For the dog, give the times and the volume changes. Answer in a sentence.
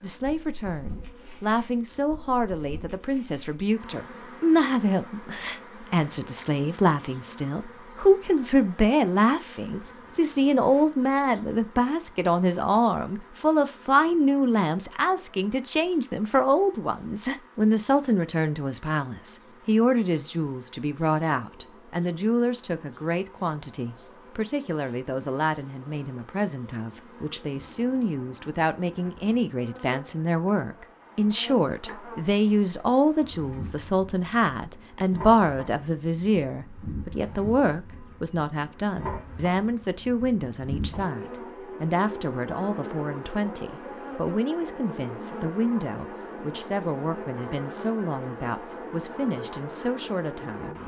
You can't hear the dog here.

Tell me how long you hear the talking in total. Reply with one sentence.
You can hear the talking for 51 seconds altogether.